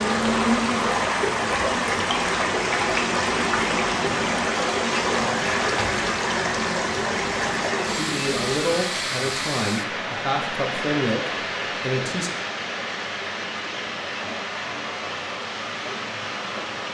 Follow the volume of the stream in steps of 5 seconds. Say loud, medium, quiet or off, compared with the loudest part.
loud, loud, medium, medium.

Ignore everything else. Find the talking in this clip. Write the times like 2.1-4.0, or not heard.
7.8-12.3.